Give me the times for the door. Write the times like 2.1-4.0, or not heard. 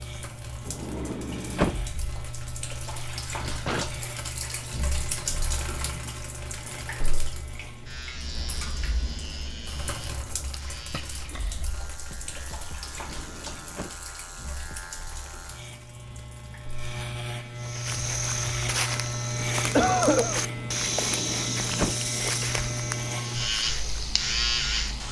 0.7-1.9, 12.8-14.0, 21.0-22.1.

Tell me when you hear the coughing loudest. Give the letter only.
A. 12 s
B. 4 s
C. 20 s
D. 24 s
C.